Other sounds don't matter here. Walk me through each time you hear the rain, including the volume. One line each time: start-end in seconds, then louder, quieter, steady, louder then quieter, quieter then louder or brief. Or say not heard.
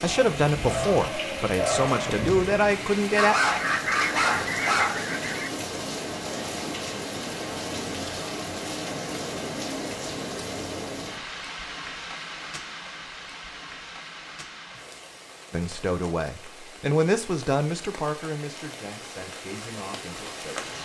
0.0-20.8 quieter.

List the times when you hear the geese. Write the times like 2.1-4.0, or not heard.
3.7-5.5.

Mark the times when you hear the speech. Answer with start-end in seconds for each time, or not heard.
0.0-3.4, 15.5-20.7.